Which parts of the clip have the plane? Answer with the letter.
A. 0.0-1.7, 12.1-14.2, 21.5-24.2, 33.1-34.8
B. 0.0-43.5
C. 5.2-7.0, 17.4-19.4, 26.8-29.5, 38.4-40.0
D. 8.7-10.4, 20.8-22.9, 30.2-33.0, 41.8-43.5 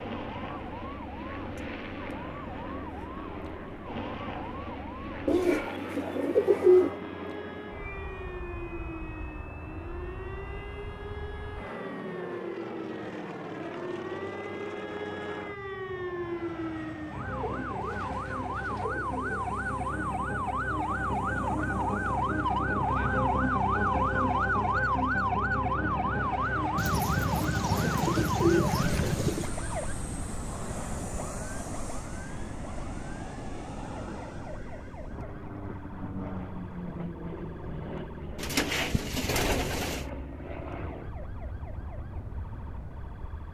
B.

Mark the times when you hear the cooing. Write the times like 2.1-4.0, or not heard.
5.2-7.0, 17.4-19.4, 26.8-29.5, 38.4-40.0.